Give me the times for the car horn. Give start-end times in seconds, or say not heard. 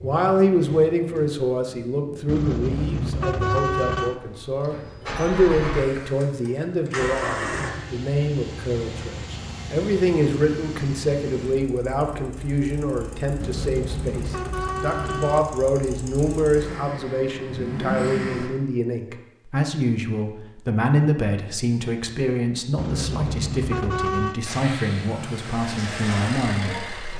2.2-4.2, 13.4-15.4, 22.8-24.4.